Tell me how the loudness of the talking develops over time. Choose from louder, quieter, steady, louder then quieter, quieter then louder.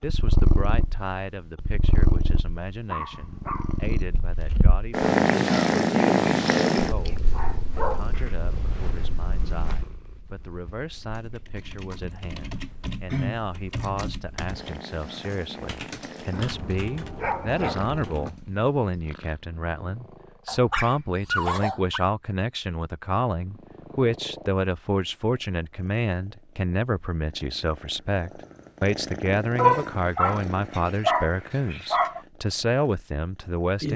louder.